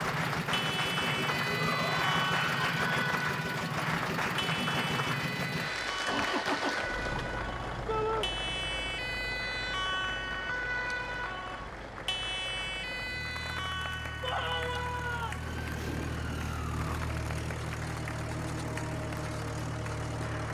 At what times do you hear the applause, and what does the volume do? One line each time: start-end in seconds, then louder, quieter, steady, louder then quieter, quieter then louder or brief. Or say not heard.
0.0-20.4 quieter.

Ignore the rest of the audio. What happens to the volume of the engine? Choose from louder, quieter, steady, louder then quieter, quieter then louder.
quieter then louder.